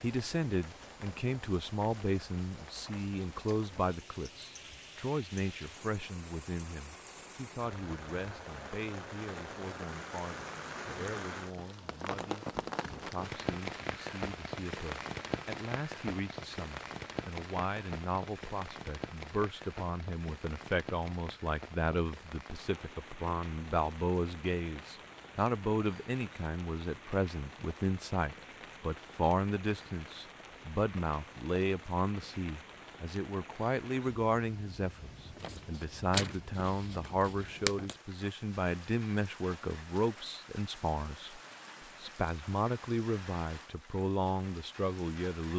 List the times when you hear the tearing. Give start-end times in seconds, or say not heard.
35.4-38.0.